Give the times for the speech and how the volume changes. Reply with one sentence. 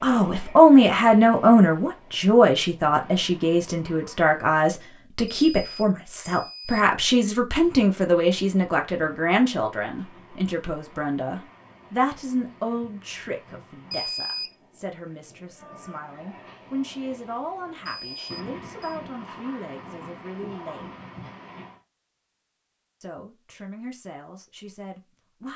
The speech can be heard from 0.0 to 21.0 s, getting quieter; and briefly from 23.0 to 25.5 s.